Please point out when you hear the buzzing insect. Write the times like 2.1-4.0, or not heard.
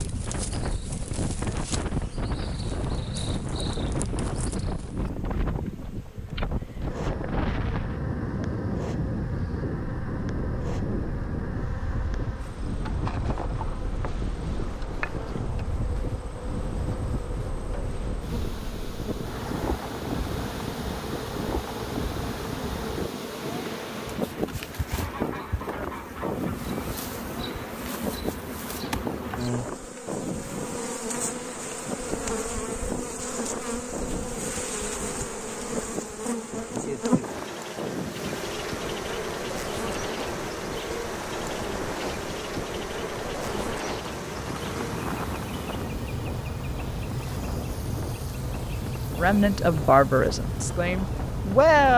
0.0-51.9.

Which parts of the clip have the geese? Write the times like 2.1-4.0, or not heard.
25.0-26.7.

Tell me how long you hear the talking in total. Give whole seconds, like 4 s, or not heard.
3 s.